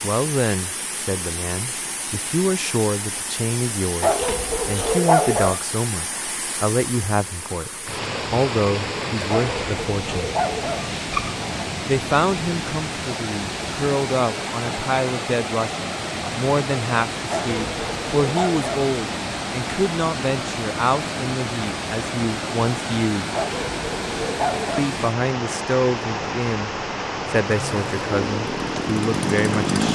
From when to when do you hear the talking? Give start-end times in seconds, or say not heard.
0.0-10.2, 11.8-23.2, 24.8-29.8.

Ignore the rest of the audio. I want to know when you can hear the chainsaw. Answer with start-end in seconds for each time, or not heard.
27.4-29.8.